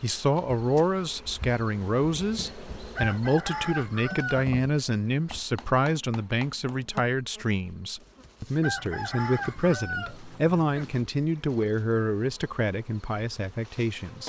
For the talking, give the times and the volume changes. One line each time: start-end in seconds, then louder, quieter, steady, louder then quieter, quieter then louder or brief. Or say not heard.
0.0-14.2 steady.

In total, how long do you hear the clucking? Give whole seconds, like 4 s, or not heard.
4 s.